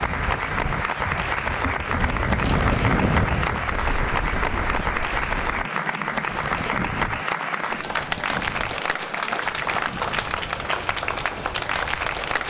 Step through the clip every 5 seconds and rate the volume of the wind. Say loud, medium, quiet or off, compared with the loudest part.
loud, medium, quiet.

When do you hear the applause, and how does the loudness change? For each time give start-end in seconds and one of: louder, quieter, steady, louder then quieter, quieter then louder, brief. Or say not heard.
0.0-12.4 steady.